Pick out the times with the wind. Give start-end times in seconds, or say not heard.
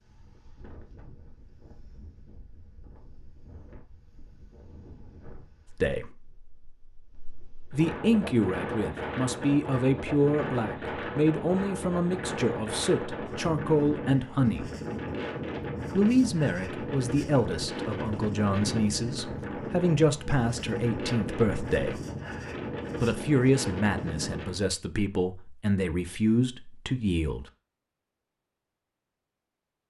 0.0-24.6.